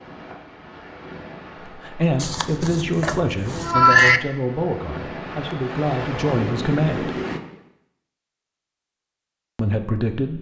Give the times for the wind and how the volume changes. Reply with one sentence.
The wind can be heard from 0.0 to 7.4 s, getting louder.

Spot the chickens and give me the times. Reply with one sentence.
You can't hear the chickens here.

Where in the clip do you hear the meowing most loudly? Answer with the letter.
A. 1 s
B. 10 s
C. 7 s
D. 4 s
D.